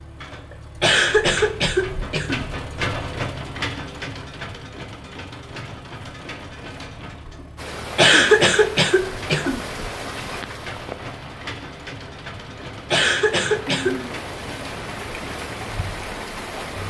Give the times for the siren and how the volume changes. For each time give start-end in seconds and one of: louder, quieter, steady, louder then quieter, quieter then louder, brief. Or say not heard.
not heard.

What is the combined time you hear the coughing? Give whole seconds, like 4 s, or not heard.
5 s.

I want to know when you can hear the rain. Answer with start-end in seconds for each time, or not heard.
7.5-16.8.